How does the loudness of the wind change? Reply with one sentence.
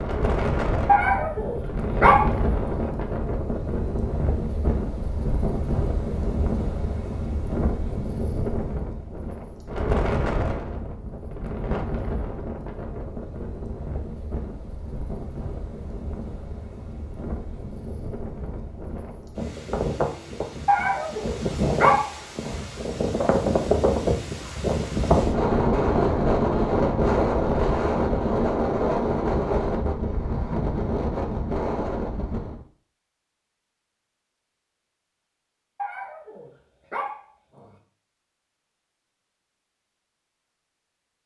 The volume of the wind goes down, then up.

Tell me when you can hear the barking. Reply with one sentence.
The barking can be heard from 0.8 to 2.9 s, from 20.6 to 22.6 s and from 35.8 to 37.8 s.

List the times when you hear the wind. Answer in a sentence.
The wind can be heard from 0.0 to 32.6 s.